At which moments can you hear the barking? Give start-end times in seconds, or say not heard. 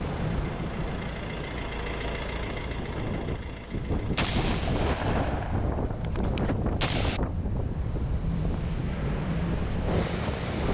not heard.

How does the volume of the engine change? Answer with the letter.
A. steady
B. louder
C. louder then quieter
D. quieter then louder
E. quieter
C.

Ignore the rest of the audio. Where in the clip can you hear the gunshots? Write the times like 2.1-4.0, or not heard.
4.2-7.2.